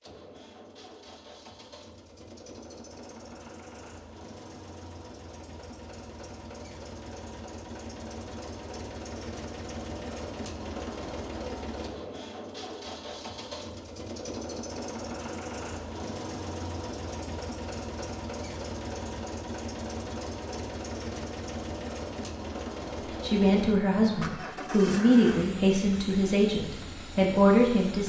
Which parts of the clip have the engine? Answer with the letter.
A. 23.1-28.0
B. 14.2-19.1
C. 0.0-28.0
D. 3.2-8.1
C.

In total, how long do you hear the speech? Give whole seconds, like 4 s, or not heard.
5 s.